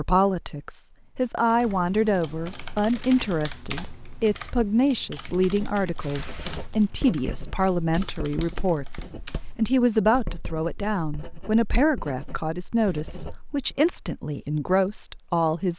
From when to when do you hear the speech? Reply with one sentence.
You can hear the speech from 0.0 to 15.7 s.